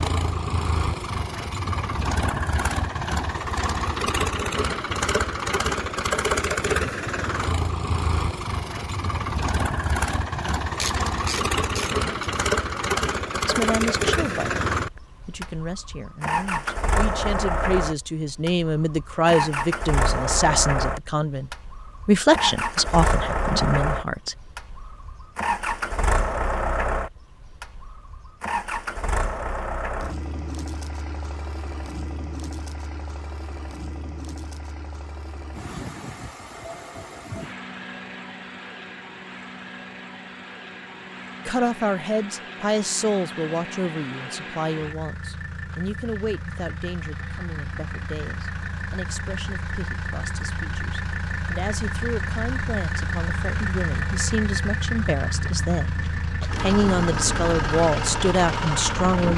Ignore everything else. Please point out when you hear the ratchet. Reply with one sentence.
The ratchet can be heard from 10.8 to 12.1 s.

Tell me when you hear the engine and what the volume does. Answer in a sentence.
The engine can be heard from 0.0 to 59.3 s, getting quieter then louder.